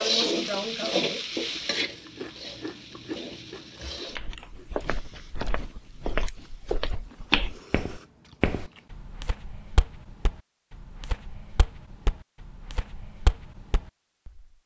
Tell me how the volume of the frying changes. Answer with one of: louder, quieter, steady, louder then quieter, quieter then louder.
quieter.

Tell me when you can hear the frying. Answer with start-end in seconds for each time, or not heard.
0.0-4.2.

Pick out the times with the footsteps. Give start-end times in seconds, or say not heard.
4.2-14.4.